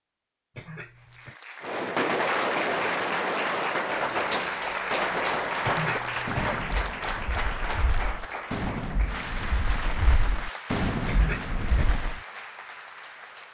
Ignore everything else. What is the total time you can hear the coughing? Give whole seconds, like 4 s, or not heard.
3 s.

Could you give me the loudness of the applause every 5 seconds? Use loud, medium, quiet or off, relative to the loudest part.
loud, loud, medium.